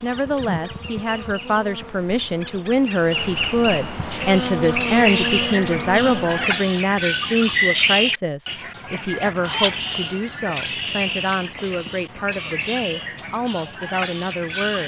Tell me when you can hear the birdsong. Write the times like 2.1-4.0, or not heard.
4.1-14.8.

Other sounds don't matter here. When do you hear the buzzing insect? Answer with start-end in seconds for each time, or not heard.
0.0-6.5.